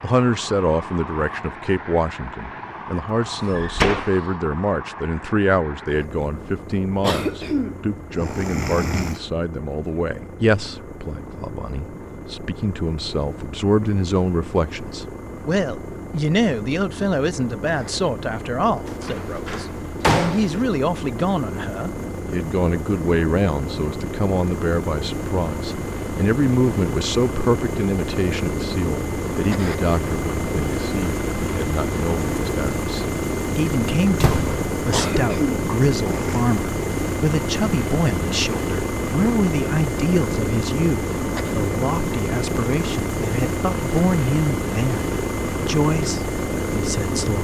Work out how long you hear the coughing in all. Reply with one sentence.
The coughing can be heard for 4 seconds in total.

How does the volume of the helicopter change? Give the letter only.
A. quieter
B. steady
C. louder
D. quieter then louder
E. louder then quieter
C.